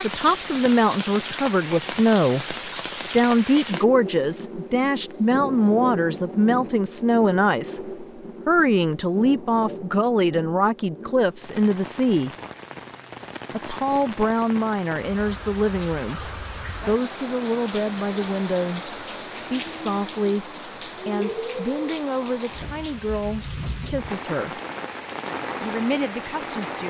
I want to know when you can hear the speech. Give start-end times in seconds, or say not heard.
0.0-12.3, 13.5-24.6, 25.6-26.8.